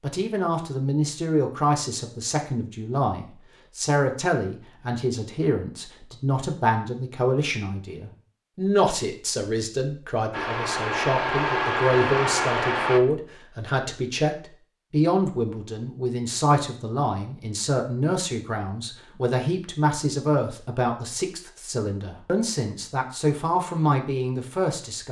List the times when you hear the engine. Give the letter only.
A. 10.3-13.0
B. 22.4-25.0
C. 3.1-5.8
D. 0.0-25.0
A.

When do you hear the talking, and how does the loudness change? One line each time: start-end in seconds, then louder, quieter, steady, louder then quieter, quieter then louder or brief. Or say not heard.
0.0-25.0 steady.